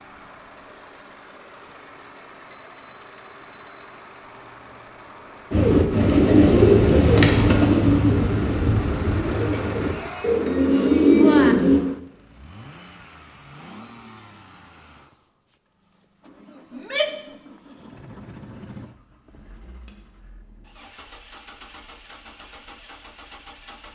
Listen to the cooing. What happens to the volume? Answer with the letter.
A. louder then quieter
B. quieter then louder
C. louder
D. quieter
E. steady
B.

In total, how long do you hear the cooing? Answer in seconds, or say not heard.
6 s.